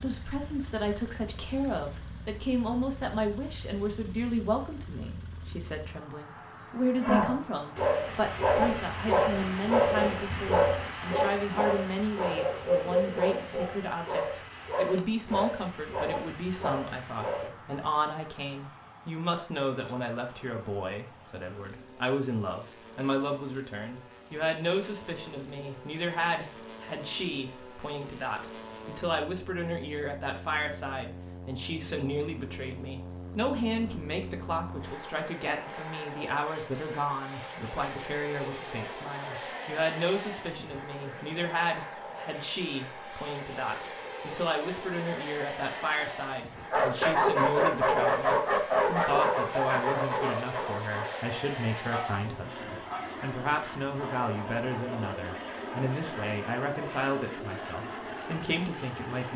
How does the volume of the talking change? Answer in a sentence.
The volume of the talking stays about the same.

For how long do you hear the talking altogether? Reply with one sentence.
The talking can be heard for 59 seconds in total.